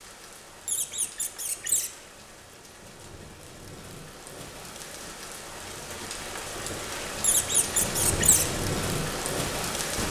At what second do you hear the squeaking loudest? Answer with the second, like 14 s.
8 s.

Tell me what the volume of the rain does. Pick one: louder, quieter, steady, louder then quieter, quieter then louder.
louder.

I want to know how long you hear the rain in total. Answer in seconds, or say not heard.
10 s.